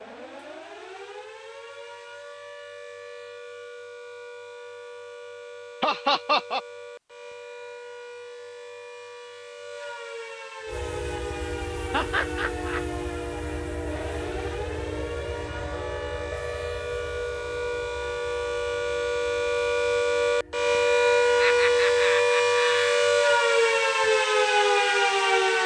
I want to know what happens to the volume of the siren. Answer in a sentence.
The volume of the siren goes up.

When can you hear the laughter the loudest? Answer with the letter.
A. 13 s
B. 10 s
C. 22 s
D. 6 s
D.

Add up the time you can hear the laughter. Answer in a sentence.
The laughter can be heard for 3 seconds in total.